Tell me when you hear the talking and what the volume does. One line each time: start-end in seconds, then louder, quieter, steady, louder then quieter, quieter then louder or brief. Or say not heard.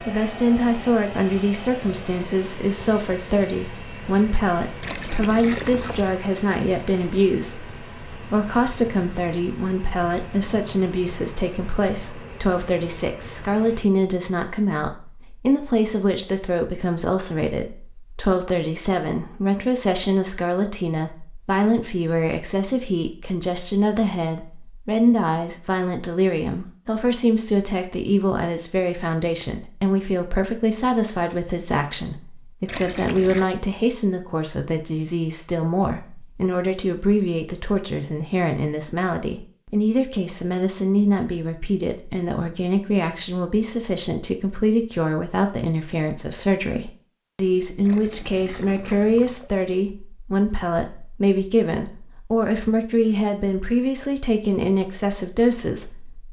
0.1-56.2 steady.